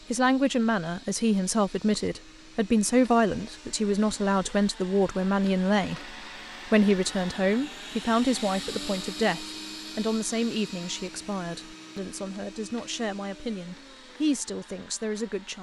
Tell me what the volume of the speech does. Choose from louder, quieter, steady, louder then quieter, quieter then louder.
quieter.